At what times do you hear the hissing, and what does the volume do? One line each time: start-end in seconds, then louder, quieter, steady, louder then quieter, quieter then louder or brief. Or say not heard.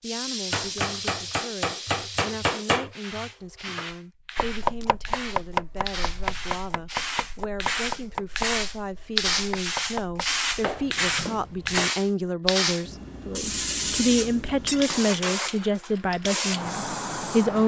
0.0-17.6 louder.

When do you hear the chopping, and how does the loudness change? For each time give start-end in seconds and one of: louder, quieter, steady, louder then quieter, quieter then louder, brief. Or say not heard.
0.5-11.9 quieter.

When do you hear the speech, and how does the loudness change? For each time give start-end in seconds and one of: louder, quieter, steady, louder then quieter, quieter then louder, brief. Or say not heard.
0.0-17.6 louder.